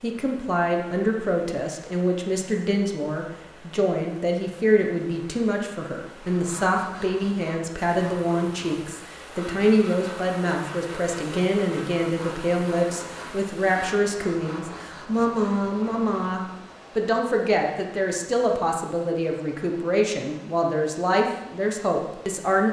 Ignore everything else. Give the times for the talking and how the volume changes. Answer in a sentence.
The talking can be heard from 0.0 to 22.6 s, at a steady volume.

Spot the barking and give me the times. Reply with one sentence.
You can't hear the barking here.